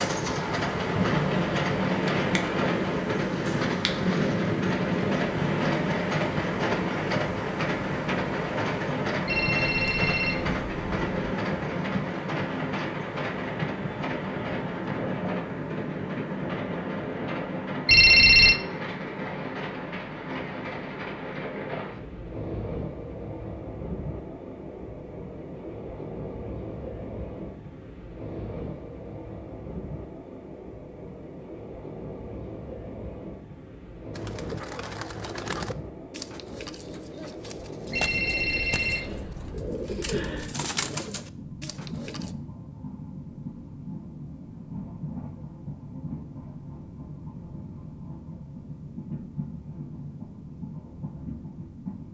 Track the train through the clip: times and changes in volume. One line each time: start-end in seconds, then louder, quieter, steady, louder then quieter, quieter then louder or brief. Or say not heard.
0.0-52.0 quieter.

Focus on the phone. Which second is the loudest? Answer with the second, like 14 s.
18 s.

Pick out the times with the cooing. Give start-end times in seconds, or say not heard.
34.1-42.4.